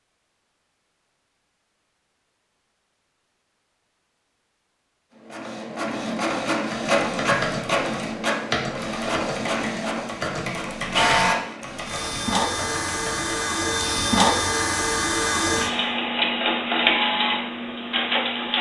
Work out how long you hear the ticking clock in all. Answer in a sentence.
The ticking clock can't be heard in this clip.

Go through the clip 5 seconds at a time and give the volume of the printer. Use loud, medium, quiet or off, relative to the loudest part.
off, loud, loud, loud.